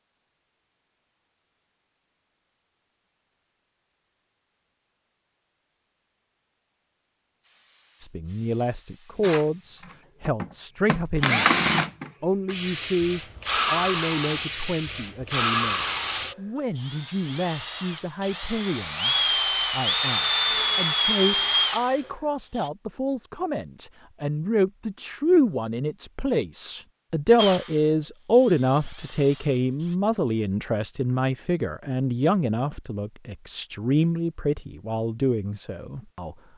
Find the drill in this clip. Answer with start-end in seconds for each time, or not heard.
9.2-22.7, 27.4-29.9.